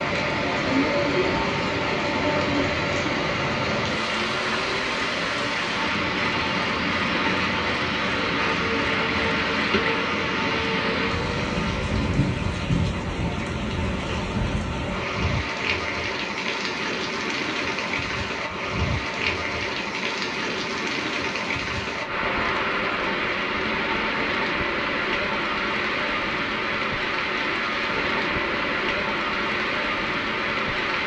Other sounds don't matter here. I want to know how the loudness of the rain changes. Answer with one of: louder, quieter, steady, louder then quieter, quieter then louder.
steady.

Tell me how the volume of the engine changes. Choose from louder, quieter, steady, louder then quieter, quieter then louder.
steady.